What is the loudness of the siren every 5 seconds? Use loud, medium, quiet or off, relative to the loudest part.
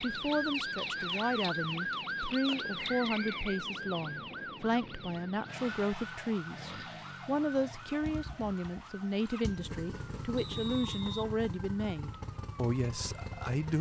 loud, medium, quiet.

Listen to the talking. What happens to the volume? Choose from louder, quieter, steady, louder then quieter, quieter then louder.
steady.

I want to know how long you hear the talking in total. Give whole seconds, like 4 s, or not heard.
14 s.